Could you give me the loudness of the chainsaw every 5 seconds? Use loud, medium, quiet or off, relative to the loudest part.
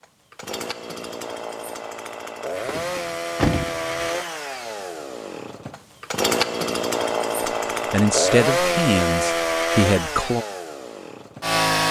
medium, loud, loud.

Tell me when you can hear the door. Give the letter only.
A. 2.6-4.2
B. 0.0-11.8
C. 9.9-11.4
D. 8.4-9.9
A.